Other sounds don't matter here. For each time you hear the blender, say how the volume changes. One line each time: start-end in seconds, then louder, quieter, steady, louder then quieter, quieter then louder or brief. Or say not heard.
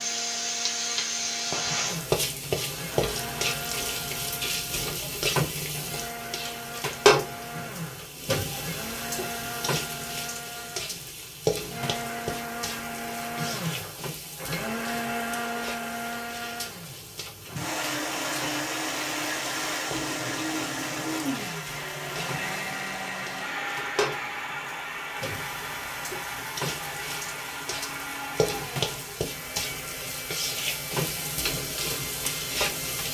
0.0-33.0 louder then quieter.